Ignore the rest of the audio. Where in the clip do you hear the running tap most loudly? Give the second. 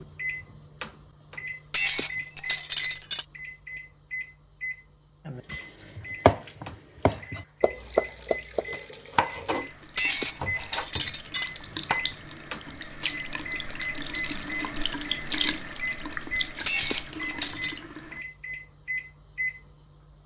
15 s.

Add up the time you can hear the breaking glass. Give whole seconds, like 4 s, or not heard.
4 s.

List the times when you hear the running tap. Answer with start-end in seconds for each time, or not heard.
5.3-18.2.